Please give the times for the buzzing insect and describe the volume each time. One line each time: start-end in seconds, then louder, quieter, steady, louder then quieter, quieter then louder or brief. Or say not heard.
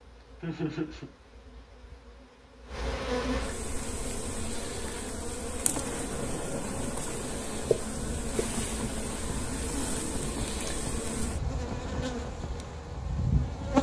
0.0-13.7 louder.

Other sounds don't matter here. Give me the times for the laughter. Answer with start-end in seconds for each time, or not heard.
0.4-1.1.